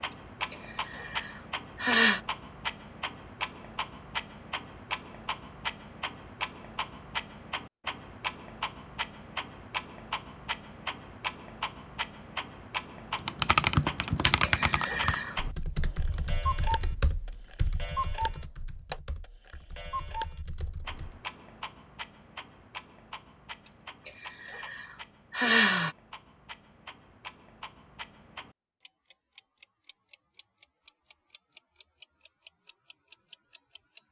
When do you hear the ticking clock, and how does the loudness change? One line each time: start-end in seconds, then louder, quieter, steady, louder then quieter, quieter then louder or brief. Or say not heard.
0.0-34.0 quieter.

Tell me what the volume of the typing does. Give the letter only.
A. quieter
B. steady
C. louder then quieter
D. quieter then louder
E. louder
A.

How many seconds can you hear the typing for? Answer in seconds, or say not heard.
8 s.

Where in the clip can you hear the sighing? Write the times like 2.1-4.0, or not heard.
0.1-2.2, 14.0-15.3, 23.6-25.9.